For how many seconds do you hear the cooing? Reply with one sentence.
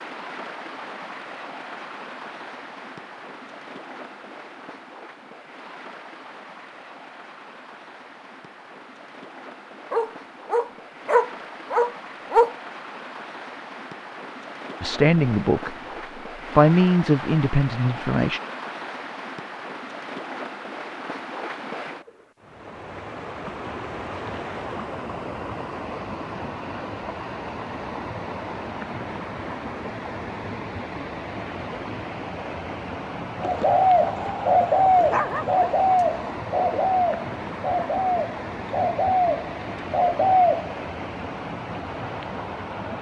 The cooing can be heard for 7 seconds in total.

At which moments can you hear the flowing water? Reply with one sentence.
You can hear the flowing water from 0.0 to 42.9 s.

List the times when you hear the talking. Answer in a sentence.
The talking can be heard from 14.8 to 18.4 s.